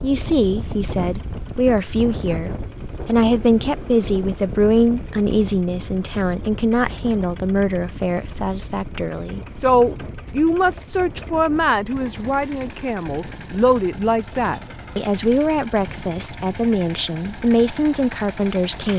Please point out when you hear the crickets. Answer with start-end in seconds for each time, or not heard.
not heard.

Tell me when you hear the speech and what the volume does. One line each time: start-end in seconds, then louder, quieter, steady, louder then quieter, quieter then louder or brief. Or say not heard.
0.0-18.9 steady.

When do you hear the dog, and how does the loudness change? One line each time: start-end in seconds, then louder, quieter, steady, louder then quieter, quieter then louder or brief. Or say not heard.
not heard.